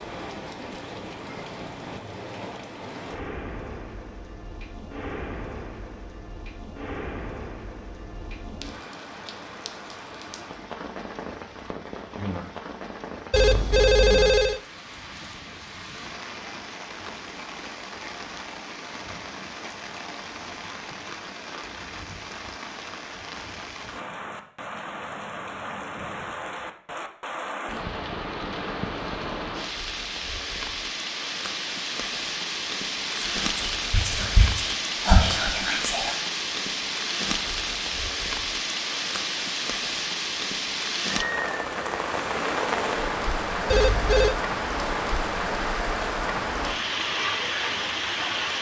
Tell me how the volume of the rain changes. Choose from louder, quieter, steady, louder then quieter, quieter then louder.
louder.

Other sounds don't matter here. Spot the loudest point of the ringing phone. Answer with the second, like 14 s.
14 s.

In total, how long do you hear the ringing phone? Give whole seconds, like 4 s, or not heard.
2 s.